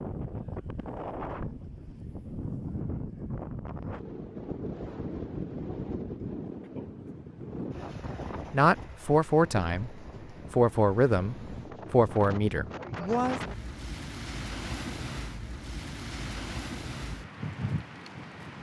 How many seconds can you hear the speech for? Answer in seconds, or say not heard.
5 s.